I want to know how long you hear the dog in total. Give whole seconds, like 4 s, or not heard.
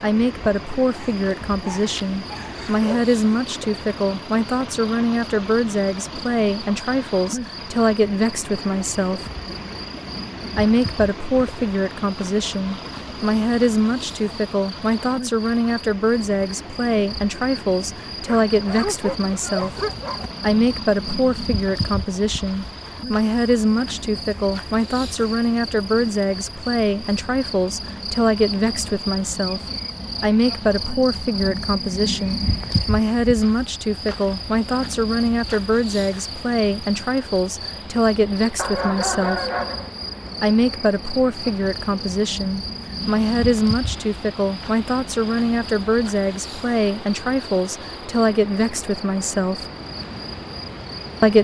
5 s.